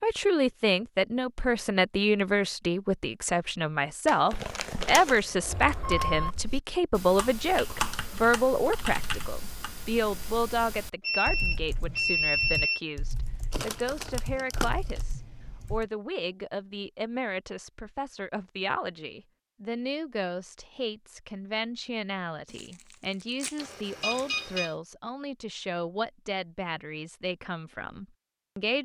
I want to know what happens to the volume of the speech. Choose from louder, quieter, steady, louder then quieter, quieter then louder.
quieter.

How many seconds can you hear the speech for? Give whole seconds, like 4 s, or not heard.
29 s.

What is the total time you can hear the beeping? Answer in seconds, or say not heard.
5 s.